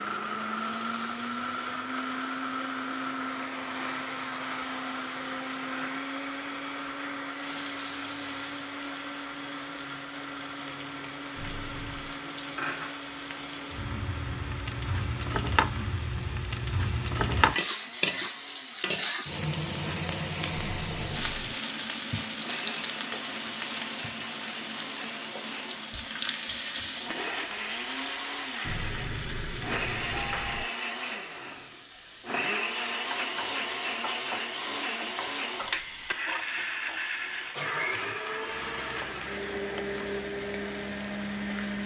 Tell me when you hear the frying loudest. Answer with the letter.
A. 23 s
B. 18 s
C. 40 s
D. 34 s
B.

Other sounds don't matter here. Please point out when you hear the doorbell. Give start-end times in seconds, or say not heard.
11.3-12.2, 20.5-21.6, 28.6-30.6.